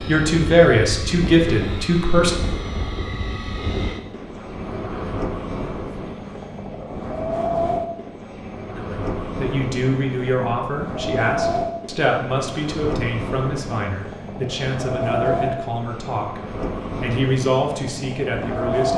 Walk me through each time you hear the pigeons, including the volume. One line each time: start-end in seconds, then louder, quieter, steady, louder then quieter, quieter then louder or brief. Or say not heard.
not heard.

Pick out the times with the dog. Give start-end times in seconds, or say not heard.
not heard.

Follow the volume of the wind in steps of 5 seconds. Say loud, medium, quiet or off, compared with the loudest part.
medium, loud, loud, loud.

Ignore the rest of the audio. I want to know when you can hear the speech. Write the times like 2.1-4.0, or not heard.
0.1-2.4, 8.7-18.9.